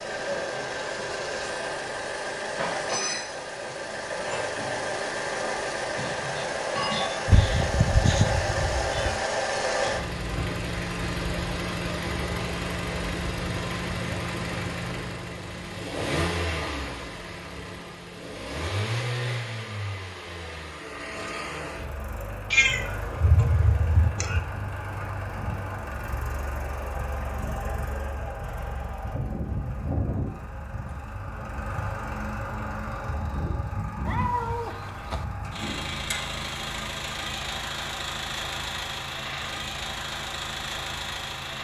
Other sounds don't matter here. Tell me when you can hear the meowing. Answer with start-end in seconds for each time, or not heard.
7.2-9.2, 22.5-24.4, 34.0-35.2.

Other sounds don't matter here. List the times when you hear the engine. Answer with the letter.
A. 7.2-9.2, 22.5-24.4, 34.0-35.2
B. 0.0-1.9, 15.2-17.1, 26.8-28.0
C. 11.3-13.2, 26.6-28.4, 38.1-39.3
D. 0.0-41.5
D.